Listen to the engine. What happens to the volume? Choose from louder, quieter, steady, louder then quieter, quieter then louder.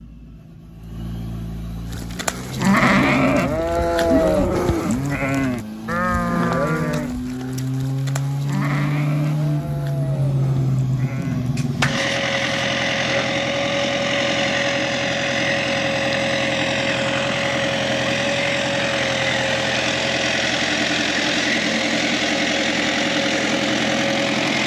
louder.